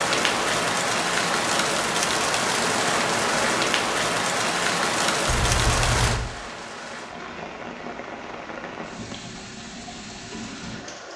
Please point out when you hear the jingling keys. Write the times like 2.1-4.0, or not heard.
5.2-6.3.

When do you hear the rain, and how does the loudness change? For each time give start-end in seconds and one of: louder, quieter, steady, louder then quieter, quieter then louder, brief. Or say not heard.
0.0-11.1 quieter.